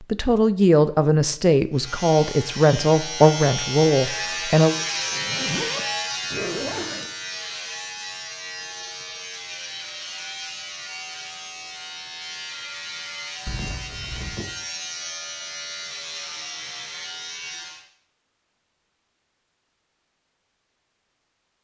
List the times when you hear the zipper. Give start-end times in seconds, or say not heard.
5.0-7.1, 13.4-14.4.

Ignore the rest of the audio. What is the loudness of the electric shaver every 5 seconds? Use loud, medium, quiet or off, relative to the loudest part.
loud, loud, medium, medium, off.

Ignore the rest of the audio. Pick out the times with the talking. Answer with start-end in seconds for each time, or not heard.
0.1-4.8.